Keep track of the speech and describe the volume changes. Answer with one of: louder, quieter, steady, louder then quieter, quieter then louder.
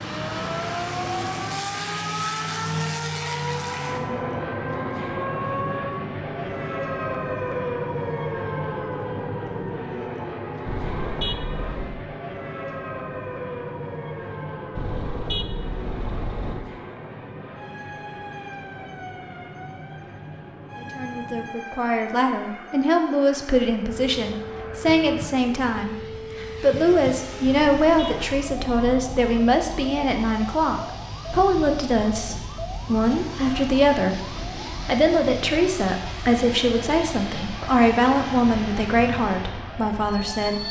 steady.